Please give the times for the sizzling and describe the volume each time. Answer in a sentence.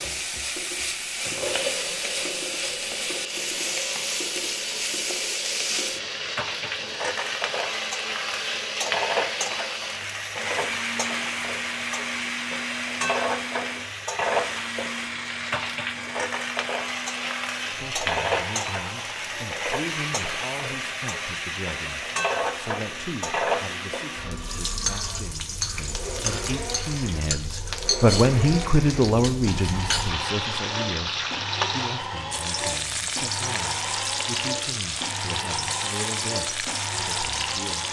The sizzling can be heard from 0.0 to 37.8 s, at a steady volume.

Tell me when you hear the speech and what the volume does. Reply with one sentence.
The speech can be heard from 17.7 to 37.8 s, getting louder then quieter.